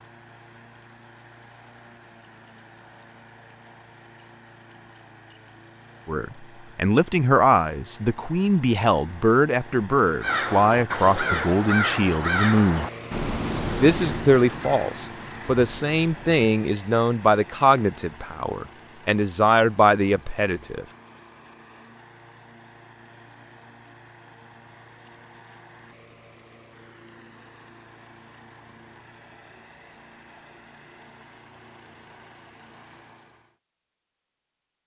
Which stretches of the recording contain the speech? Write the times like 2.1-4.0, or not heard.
6.0-12.8, 13.8-20.9.